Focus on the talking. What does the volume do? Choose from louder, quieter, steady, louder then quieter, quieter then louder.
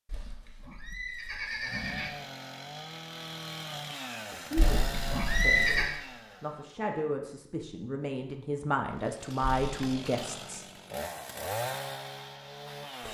louder.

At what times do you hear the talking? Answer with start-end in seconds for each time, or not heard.
4.3-10.7.